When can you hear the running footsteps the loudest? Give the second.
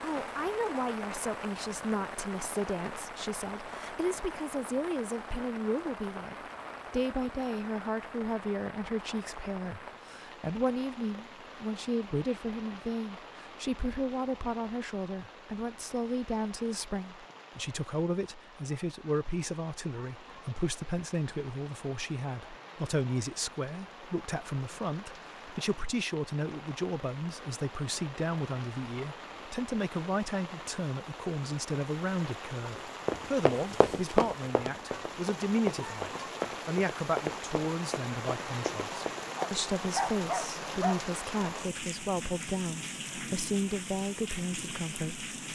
34 s.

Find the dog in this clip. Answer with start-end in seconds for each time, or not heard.
39.4-41.0.